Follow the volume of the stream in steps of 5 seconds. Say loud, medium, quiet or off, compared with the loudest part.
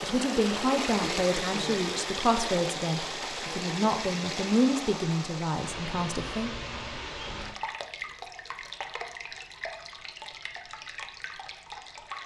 loud, medium, medium.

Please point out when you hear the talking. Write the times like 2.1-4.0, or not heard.
0.0-6.5.